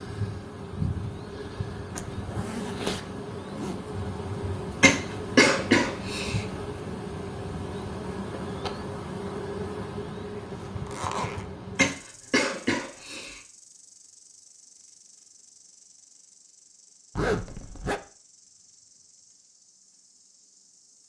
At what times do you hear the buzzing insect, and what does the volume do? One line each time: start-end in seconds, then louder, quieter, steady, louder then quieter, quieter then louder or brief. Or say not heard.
0.0-21.0 quieter.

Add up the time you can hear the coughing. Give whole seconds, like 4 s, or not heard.
3 s.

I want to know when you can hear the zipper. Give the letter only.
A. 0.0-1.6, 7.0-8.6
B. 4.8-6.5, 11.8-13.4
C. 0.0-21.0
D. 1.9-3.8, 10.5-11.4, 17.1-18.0
D.